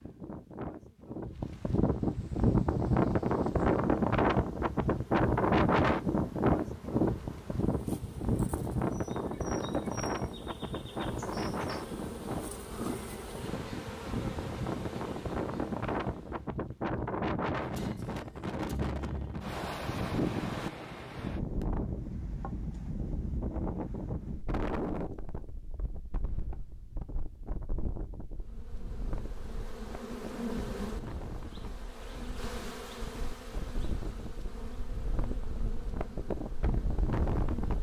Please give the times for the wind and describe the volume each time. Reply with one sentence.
The wind can be heard from 0.0 to 37.7 s, getting quieter.